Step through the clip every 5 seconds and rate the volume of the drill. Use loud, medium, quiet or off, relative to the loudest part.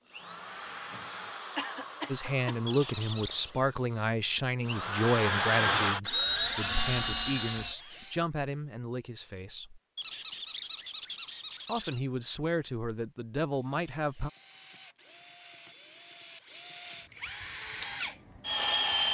quiet, loud, quiet, medium.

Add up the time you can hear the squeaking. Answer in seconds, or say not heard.
3 s.